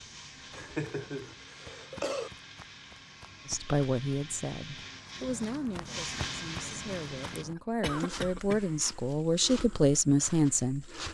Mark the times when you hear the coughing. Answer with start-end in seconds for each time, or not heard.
0.5-2.3, 7.5-8.7.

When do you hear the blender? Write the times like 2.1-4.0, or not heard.
0.0-7.5.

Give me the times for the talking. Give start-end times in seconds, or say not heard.
3.5-10.9.